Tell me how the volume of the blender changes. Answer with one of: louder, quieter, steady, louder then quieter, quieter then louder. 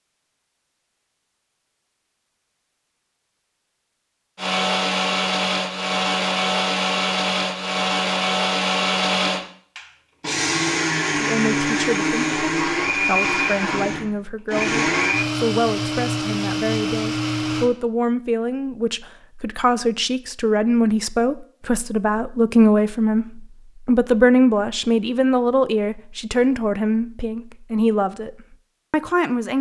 steady.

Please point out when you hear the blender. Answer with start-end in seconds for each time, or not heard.
4.3-17.7.